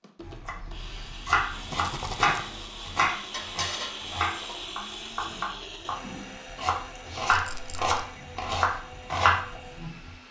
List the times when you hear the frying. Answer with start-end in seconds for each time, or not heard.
1.5-4.5.